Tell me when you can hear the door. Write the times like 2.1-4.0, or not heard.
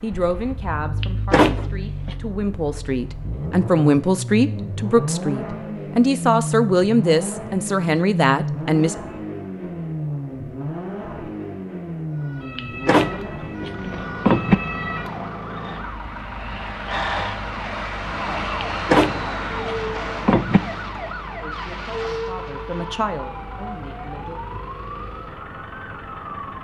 1.0-2.1, 12.6-14.6, 18.6-20.6.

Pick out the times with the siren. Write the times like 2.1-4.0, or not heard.
12.1-26.5.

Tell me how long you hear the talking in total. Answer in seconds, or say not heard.
12 s.